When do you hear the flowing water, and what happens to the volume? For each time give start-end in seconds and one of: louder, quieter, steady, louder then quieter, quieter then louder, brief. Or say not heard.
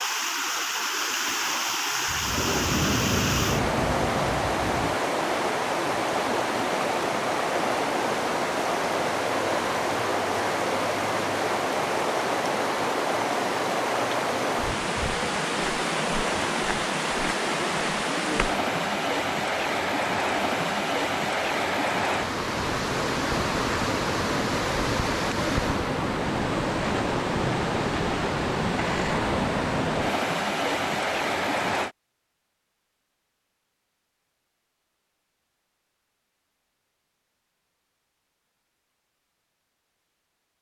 0.0-31.9 steady.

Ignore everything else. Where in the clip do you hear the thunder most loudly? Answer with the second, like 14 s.
3 s.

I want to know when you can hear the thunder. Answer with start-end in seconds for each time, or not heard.
2.0-5.0.